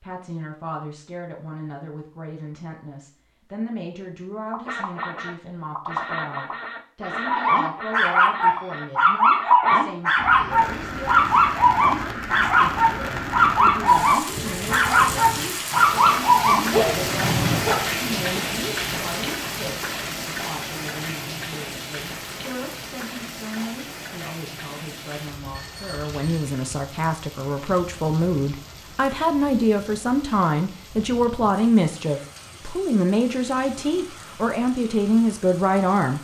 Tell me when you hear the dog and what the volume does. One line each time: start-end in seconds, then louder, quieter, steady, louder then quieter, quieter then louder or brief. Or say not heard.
7.2-17.8 steady.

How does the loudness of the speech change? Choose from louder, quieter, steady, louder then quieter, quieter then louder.
louder.